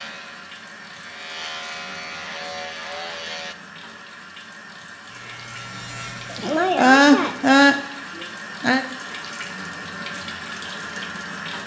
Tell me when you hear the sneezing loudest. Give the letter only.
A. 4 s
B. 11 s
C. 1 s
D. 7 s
D.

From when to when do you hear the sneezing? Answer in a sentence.
You can hear the sneezing from 6.3 to 8.8 s.